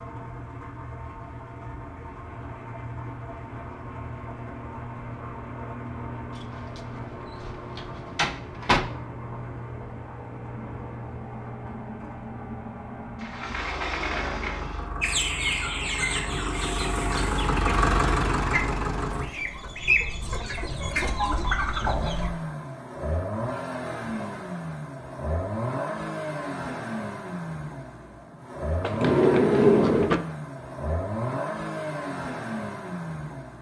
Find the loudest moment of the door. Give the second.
30 s.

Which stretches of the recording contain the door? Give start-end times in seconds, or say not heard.
6.3-8.8, 13.2-14.8, 28.8-30.2.